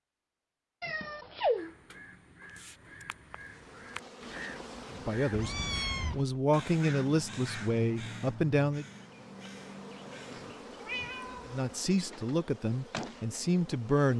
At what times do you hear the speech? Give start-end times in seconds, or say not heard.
5.0-8.8, 11.4-14.1.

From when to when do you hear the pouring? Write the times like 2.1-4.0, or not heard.
not heard.